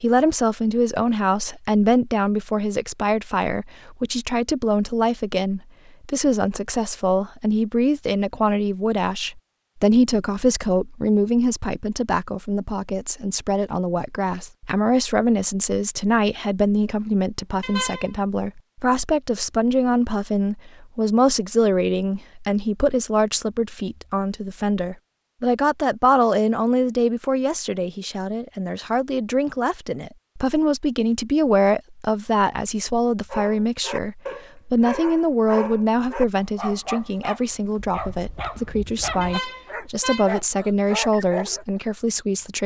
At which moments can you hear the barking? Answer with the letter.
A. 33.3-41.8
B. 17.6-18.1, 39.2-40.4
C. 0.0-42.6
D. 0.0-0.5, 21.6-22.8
A.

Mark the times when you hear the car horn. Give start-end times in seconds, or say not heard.
17.6-18.1, 39.2-40.4.